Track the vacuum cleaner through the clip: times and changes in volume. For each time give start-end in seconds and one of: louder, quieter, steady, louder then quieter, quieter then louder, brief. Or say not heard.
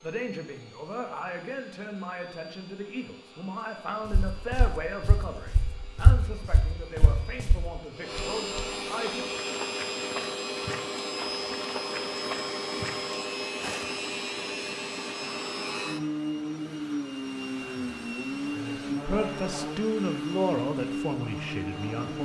0.0-22.1 louder.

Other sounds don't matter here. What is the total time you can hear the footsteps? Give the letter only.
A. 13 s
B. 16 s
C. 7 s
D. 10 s
D.